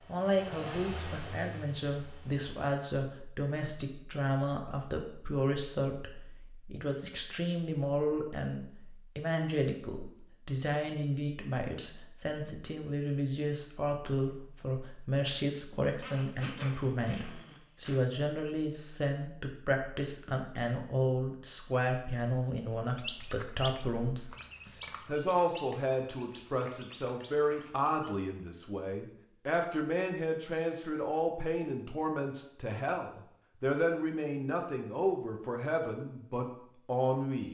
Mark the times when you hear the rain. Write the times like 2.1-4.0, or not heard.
not heard.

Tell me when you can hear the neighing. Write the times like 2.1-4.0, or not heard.
not heard.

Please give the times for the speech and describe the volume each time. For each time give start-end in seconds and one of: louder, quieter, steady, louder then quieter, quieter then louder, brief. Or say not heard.
0.1-37.4 steady.